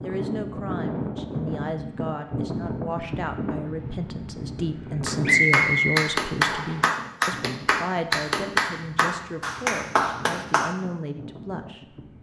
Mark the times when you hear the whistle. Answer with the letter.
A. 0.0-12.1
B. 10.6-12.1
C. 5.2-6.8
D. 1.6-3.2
C.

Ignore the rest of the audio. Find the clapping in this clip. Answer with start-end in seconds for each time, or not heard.
5.0-10.8.